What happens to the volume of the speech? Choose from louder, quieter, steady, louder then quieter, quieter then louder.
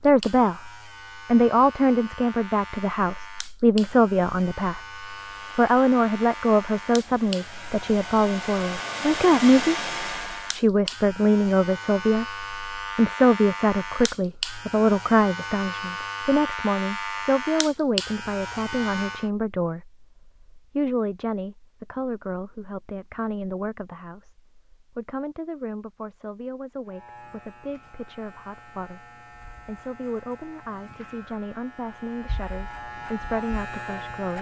quieter.